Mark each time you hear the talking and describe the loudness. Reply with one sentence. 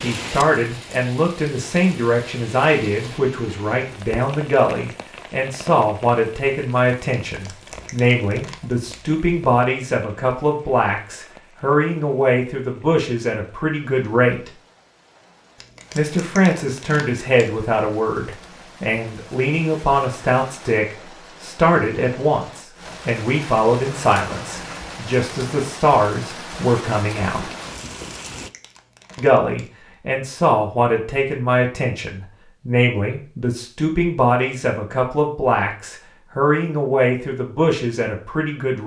The talking can be heard from 0.0 to 14.5 s, at a steady volume; from 15.9 to 27.4 s, at a steady volume; and from 29.1 to 38.8 s, at a steady volume.